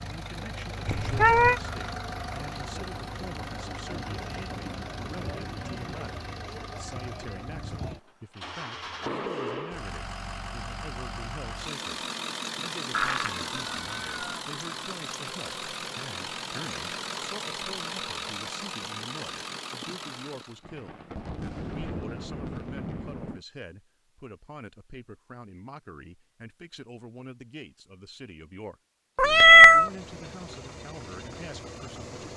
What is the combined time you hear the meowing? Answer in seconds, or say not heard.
3 s.